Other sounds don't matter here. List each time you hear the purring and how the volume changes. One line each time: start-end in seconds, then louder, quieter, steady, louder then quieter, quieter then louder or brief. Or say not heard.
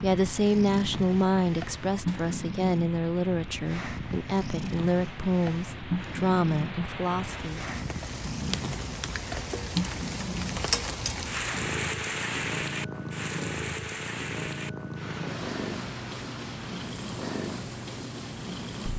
0.0-18.9 steady.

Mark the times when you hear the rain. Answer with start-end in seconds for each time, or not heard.
0.0-18.9.